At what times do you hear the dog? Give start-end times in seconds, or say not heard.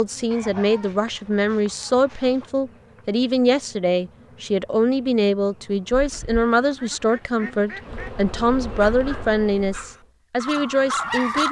8.8-11.4.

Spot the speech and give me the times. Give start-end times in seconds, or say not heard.
0.0-11.4.